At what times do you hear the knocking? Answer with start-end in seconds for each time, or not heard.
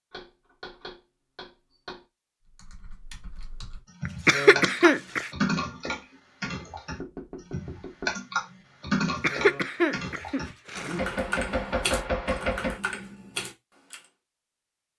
0.1-2.0, 7.0-8.2, 10.9-12.8.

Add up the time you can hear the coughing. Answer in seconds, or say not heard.
3 s.